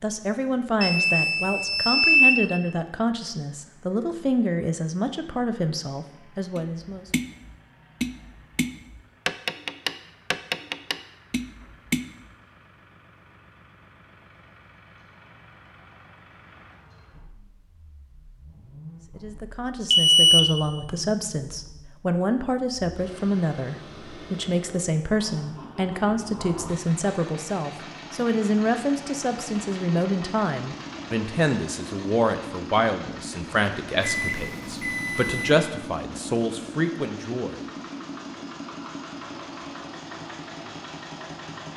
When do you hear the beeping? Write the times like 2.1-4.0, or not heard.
0.8-2.5, 19.9-20.6, 34.0-35.5.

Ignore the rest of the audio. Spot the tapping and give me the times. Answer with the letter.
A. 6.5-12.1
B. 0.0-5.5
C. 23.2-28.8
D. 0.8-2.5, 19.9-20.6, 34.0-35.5
A.